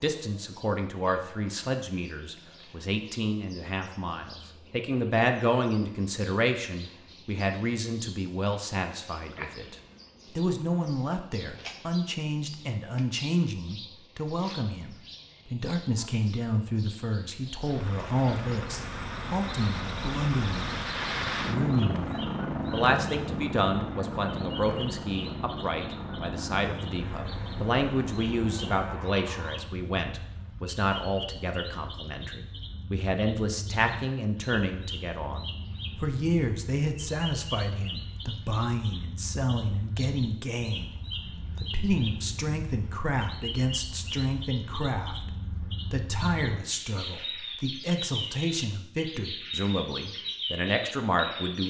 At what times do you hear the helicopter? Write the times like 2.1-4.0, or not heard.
17.6-29.6.